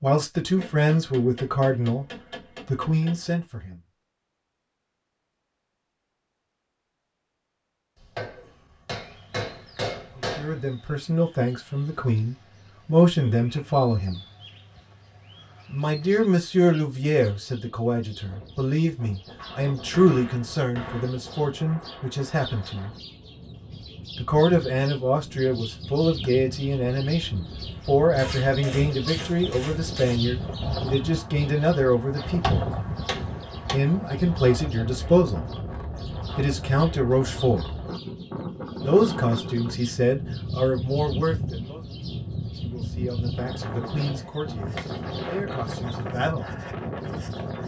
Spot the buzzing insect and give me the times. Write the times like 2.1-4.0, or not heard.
not heard.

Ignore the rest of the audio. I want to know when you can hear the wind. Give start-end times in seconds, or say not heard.
18.2-47.6.